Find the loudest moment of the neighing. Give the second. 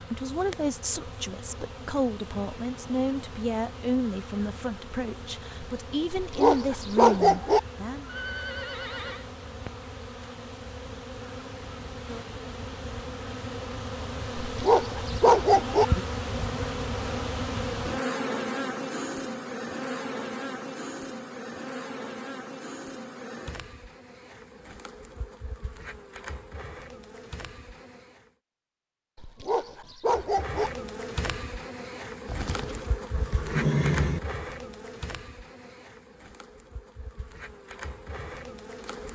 34 s.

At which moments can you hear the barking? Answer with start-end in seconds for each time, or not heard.
6.1-7.6, 14.3-15.8, 29.1-30.7.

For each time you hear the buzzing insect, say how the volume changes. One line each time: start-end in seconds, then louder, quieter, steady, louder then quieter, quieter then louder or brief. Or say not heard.
0.0-28.3 louder then quieter
30.1-39.1 quieter then louder.